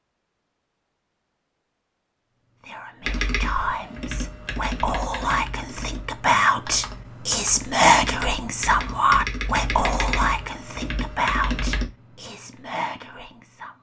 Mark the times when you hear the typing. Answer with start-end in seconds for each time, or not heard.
3.0-11.8.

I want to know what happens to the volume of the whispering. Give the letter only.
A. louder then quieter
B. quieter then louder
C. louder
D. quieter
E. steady
A.